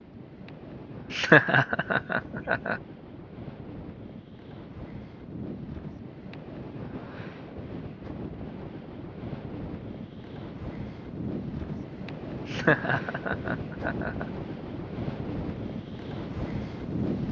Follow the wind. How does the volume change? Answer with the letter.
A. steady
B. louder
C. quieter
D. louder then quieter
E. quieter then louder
B.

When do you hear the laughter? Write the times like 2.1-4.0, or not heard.
1.1-2.8, 12.4-14.2.